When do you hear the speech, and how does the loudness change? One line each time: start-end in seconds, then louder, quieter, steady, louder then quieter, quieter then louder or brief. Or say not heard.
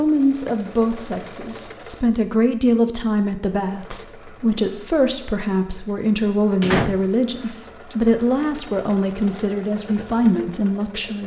0.0-11.2 steady.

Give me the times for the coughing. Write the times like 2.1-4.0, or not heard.
not heard.